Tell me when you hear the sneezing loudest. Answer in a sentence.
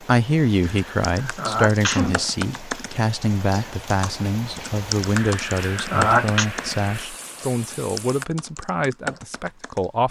The volume of the sneezing peaks at 6 seconds.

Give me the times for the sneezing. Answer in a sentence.
The sneezing can be heard from 0.7 to 2.2 s and from 5.2 to 6.5 s.